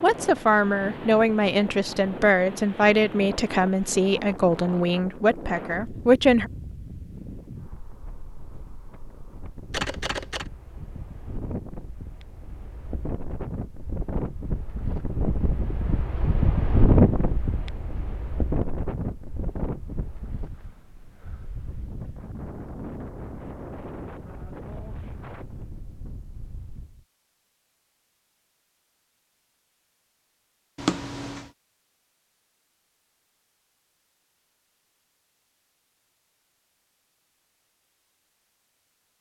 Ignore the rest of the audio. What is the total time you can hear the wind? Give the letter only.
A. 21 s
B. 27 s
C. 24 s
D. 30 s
B.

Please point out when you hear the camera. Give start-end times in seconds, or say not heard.
9.7-10.4, 30.8-31.5.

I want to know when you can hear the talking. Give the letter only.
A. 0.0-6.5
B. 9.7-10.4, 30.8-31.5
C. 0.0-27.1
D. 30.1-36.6
A.